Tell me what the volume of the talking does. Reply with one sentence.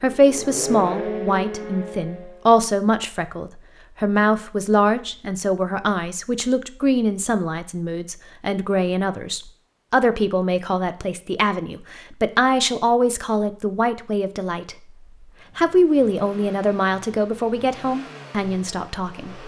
The loudness of the talking stays about the same.